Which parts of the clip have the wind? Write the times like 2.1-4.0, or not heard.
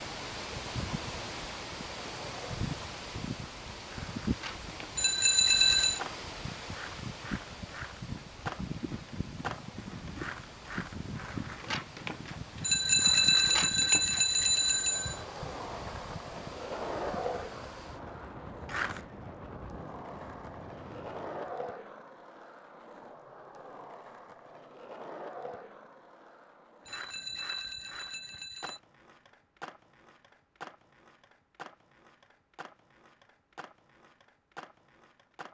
0.0-21.6.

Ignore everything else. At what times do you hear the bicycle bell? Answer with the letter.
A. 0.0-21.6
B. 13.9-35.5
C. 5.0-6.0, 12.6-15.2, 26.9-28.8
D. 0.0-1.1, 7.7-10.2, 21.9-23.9
C.